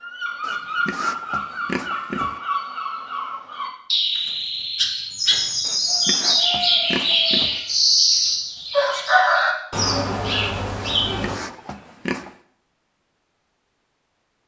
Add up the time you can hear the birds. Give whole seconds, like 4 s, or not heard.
11 s.